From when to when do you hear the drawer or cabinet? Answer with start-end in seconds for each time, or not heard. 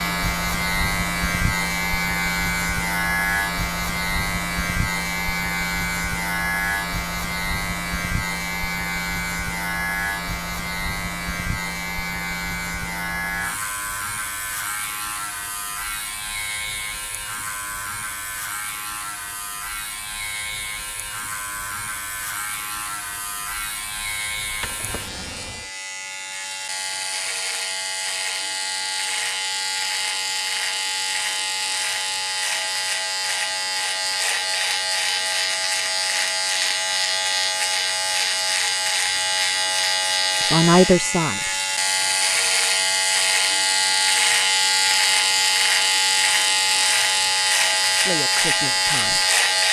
24.5-25.7.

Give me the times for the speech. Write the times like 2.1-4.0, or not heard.
40.4-41.5, 48.0-49.2.